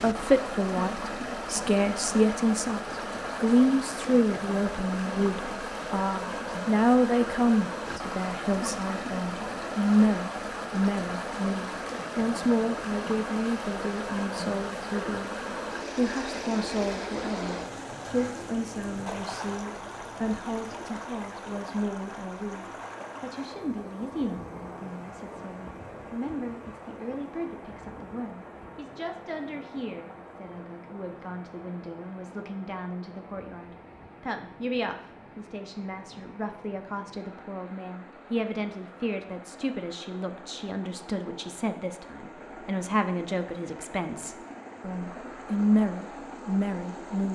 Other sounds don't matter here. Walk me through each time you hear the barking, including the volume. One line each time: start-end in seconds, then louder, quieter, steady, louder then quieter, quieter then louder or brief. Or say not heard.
not heard.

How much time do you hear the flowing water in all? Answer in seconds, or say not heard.
47 s.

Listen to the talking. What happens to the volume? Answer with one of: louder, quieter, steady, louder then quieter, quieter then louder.
quieter then louder.